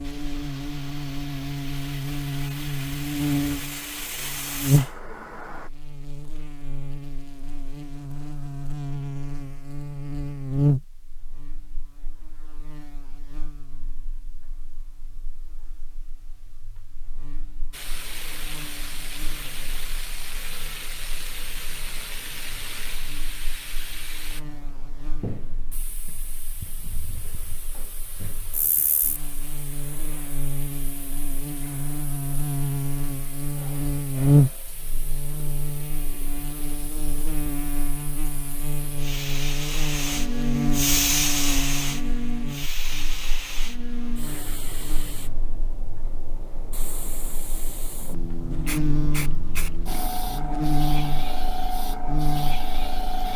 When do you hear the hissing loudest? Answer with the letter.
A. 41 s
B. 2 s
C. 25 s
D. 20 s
A.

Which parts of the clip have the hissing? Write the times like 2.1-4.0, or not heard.
0.0-5.7, 17.7-53.3.